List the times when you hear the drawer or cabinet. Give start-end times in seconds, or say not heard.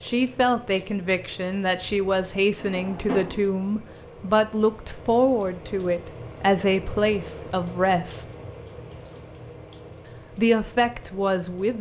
2.5-3.5.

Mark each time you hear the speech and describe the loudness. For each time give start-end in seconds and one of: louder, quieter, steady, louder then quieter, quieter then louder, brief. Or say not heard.
0.0-8.2 steady
10.3-11.7 brief.